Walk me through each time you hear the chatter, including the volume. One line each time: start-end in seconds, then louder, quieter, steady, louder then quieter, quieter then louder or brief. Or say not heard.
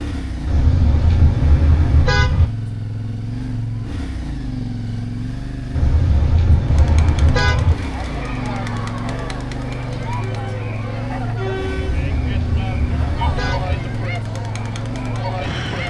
6.7-15.8 steady.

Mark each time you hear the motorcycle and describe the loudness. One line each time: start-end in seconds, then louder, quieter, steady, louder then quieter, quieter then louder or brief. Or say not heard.
0.0-15.8 steady.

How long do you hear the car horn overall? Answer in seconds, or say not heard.
6 s.